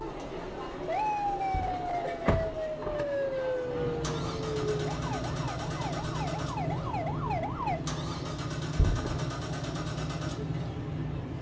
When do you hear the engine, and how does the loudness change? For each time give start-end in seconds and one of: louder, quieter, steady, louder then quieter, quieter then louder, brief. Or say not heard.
0.2-11.3 louder.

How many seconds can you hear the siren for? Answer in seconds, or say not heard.
8 s.